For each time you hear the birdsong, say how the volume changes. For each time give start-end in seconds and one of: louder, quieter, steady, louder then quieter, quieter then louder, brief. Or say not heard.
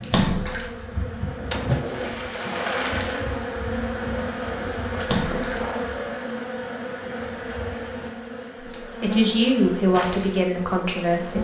not heard.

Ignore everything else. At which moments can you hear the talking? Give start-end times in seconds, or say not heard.
8.6-11.4.